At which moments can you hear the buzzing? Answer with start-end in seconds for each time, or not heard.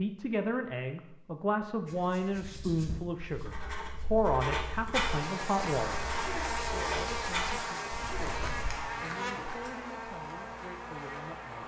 4.9-11.6.